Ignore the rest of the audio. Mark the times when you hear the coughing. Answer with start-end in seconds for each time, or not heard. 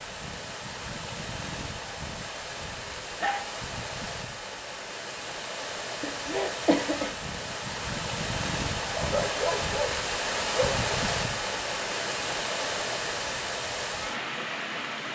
6.0-7.1.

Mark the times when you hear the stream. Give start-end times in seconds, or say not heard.
0.0-15.1.